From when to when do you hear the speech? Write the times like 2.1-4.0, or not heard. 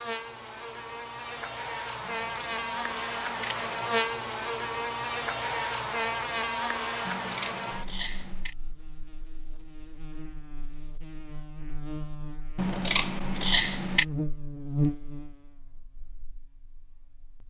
not heard.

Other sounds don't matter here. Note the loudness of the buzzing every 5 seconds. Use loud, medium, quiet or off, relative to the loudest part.
loud, loud, loud, quiet.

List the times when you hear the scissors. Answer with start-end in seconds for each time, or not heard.
2.0-3.6, 7.0-8.6, 12.6-14.1.